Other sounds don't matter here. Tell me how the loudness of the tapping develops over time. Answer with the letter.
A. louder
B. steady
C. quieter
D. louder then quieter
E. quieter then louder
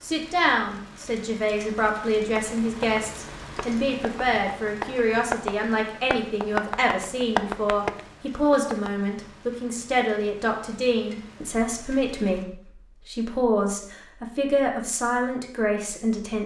A.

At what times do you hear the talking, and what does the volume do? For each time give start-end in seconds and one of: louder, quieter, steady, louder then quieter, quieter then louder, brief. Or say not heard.
0.0-16.4 steady.